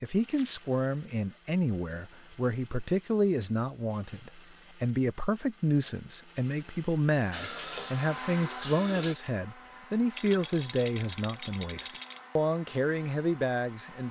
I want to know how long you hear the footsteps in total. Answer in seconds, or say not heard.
not heard.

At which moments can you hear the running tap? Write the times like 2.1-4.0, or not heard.
7.3-9.2.